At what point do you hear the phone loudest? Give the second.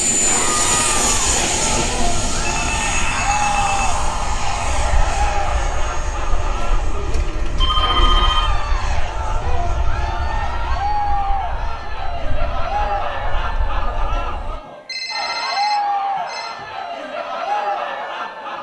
8 s.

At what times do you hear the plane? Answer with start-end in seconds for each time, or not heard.
0.0-14.6.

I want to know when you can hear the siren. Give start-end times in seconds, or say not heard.
not heard.